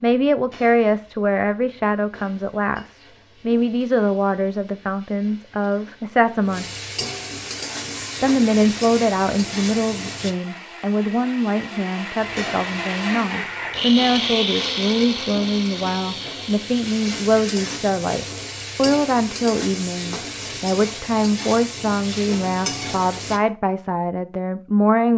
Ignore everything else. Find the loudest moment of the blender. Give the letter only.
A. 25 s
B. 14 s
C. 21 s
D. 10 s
B.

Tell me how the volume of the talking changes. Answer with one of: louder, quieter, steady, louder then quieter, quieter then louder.
steady.